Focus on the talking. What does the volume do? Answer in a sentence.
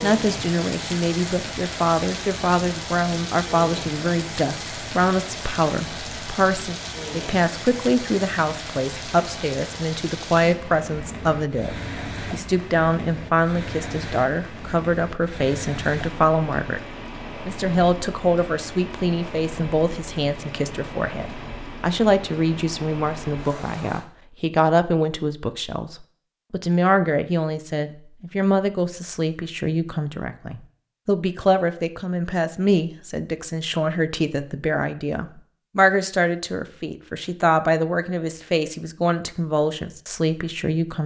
The volume of the talking stays about the same.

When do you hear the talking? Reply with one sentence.
The talking can be heard from 0.0 to 16.8 s and from 17.4 to 41.0 s.